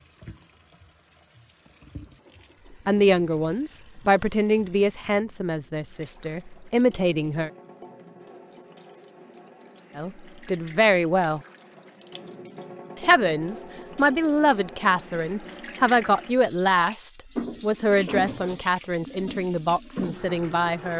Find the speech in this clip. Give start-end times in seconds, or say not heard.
2.9-7.5, 9.9-11.4, 13.0-20.9.